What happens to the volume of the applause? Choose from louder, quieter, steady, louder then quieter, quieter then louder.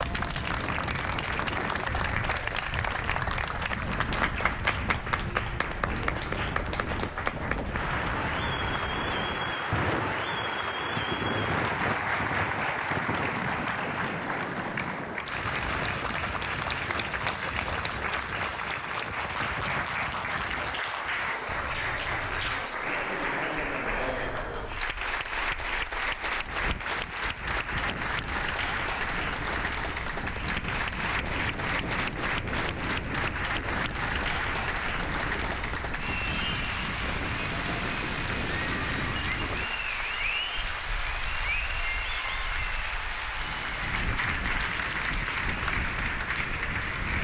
steady.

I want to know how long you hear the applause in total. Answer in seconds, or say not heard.
47 s.